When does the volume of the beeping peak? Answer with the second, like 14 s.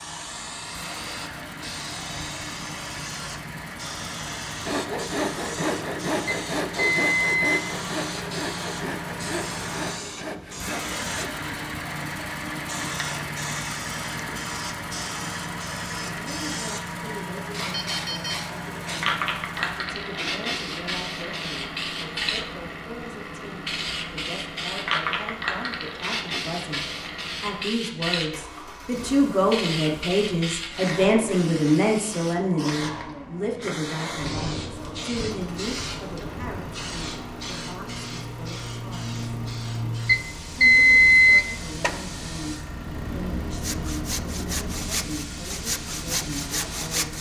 41 s.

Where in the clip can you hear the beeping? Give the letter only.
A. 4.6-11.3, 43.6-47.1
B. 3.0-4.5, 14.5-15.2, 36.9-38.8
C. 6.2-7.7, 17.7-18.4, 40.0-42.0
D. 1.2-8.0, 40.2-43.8
C.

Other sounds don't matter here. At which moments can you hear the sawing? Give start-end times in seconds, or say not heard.
4.6-11.3, 43.6-47.1.